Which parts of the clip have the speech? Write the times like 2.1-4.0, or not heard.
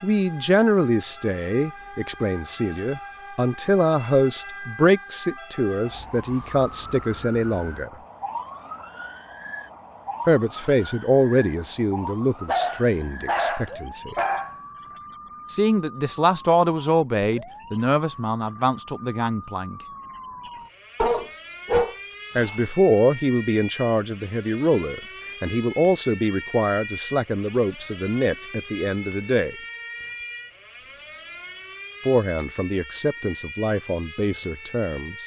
0.0-7.9, 10.2-14.2, 15.5-19.8, 22.4-29.6, 32.0-35.1.